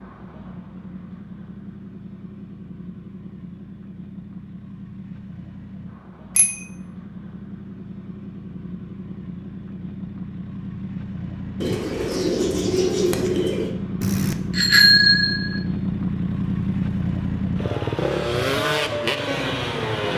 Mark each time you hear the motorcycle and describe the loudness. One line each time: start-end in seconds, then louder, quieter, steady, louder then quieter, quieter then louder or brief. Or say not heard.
0.0-20.1 louder.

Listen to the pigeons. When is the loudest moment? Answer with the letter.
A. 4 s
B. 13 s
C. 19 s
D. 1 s
B.